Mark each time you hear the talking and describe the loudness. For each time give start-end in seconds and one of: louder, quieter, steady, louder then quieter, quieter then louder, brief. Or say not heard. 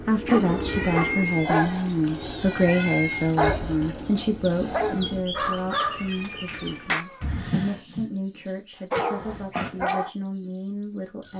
0.0-11.3 quieter.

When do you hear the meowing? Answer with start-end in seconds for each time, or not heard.
0.7-3.3, 5.9-7.8.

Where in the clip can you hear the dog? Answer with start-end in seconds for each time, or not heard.
0.2-8.1, 8.9-10.1.